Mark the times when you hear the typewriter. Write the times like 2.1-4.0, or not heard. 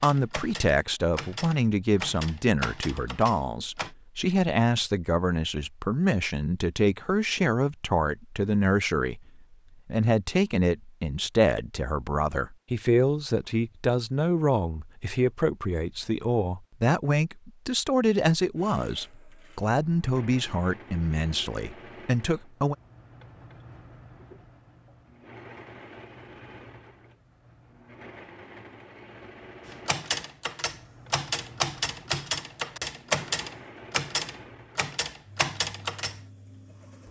0.0-3.9, 29.7-36.2.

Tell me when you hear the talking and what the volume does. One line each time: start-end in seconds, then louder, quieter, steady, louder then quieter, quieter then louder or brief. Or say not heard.
0.0-22.8 steady.